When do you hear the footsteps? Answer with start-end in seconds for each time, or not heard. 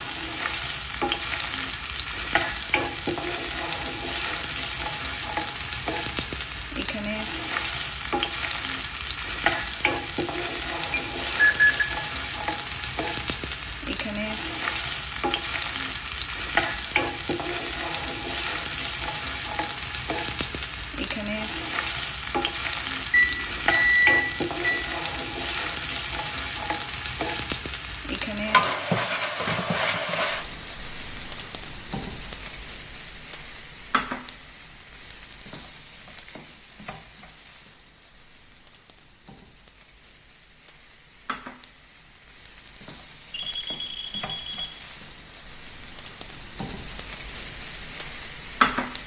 not heard.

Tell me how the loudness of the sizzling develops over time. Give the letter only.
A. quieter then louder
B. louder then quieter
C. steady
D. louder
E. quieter
E.